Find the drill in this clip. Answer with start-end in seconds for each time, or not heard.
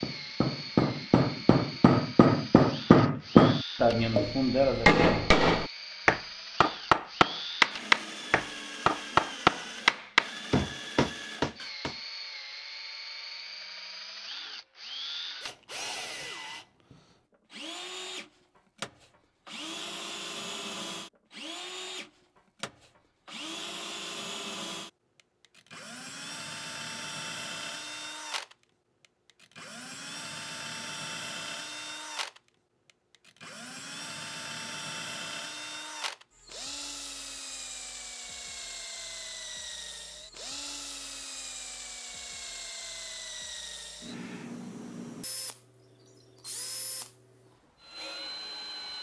0.0-48.9.